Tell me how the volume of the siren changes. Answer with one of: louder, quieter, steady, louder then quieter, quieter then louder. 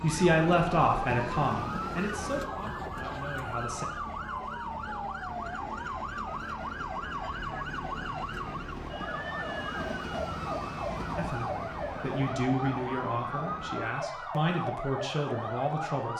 steady.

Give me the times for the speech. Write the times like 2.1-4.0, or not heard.
0.0-3.9, 11.2-16.1.